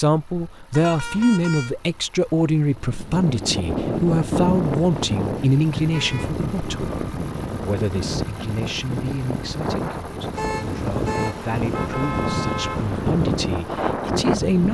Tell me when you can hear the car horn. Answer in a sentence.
The car horn can be heard from 0.7 to 1.8 s, from 5.9 to 6.4 s and from 10.3 to 12.9 s.